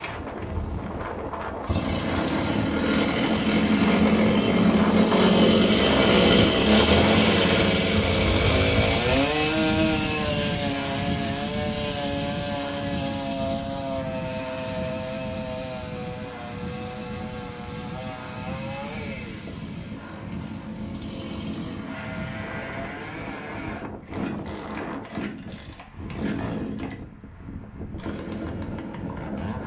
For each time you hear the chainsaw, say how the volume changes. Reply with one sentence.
The chainsaw can be heard from 0.0 to 29.6 s, getting quieter.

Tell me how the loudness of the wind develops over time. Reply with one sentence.
The loudness of the wind goes down.